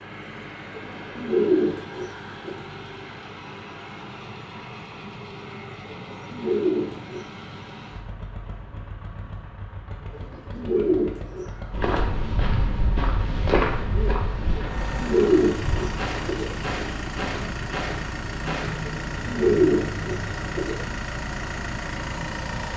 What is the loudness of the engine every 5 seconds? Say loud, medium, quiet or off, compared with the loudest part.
medium, medium, medium, loud, loud.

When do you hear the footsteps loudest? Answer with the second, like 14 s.
14 s.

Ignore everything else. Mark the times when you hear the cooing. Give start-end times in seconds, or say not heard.
0.8-2.6, 5.9-7.3, 10.1-12.1, 14.6-16.6, 18.9-20.9.